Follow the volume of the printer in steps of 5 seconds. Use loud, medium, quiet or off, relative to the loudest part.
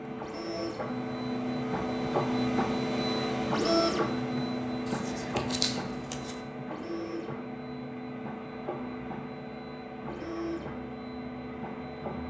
loud, medium, medium.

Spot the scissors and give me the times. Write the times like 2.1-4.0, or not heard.
4.8-6.5.